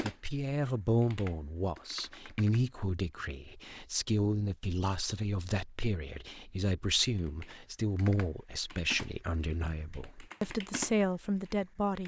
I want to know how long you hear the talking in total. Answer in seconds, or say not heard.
12 s.